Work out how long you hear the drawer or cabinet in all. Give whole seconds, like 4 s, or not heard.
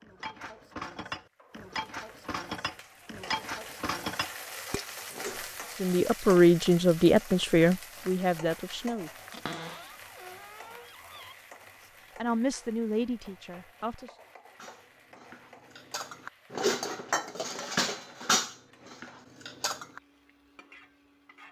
2 s.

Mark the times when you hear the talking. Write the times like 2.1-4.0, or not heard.
5.8-9.1, 12.2-14.1.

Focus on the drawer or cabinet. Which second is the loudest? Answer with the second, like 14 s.
10 s.